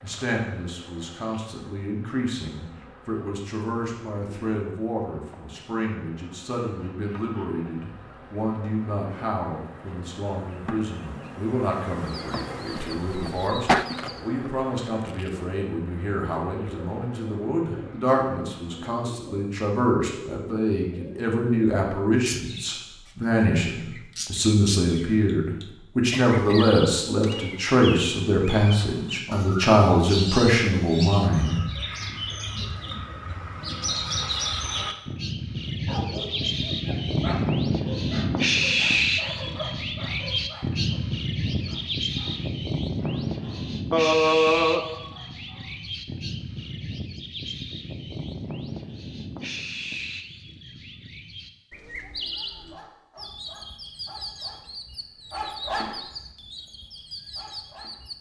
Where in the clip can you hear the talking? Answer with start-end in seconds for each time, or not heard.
0.0-31.6.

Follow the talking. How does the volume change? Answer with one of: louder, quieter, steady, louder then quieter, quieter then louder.
louder.